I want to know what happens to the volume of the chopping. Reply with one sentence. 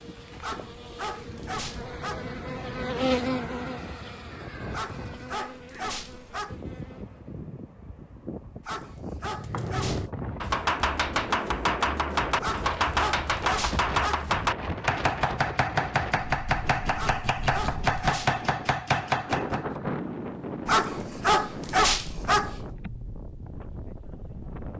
The volume of the chopping stays about the same.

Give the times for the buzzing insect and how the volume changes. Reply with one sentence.
The buzzing insect can be heard from 0.0 to 7.4 s, getting louder then quieter.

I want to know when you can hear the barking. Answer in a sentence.
You can hear the barking from 0.4 to 2.4 s, from 4.7 to 6.6 s, from 8.6 to 10.1 s, from 12.4 to 14.3 s, from 16.9 to 18.4 s and from 20.6 to 22.6 s.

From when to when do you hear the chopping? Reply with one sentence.
The chopping can be heard from 9.3 to 19.6 s.